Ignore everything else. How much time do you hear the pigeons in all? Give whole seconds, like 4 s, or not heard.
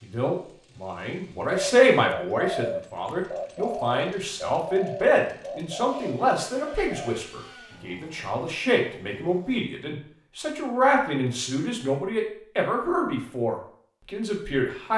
6 s.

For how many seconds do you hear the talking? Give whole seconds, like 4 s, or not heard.
15 s.